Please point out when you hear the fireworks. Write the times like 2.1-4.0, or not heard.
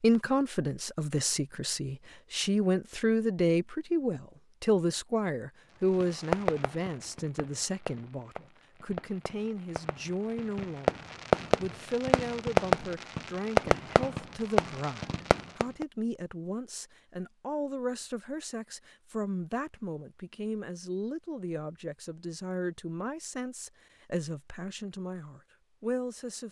6.0-15.8.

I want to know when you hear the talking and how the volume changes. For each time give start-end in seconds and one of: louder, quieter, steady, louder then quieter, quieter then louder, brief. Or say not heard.
0.0-26.4 quieter.